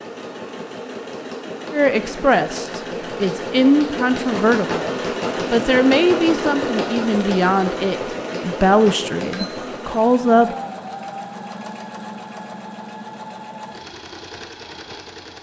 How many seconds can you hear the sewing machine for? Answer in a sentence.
You can hear the sewing machine for 15 seconds altogether.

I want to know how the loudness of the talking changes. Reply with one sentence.
The loudness of the talking stays about the same.